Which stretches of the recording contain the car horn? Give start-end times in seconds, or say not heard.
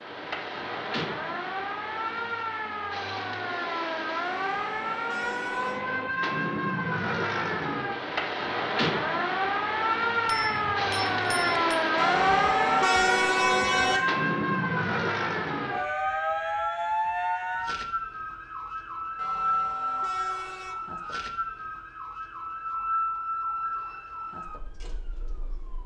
4.2-5.8, 11.9-14.0, 19.1-20.8.